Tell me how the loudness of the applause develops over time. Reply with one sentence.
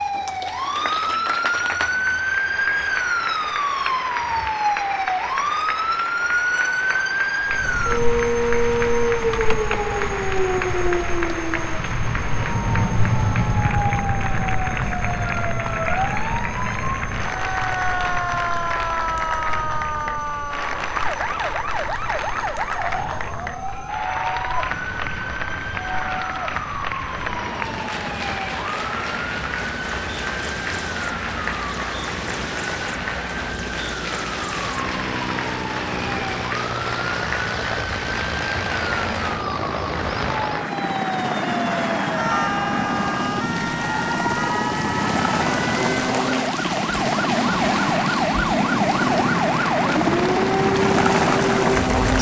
The volume of the applause stays about the same.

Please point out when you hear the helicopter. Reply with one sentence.
You can hear the helicopter from 7.4 to 52.1 s.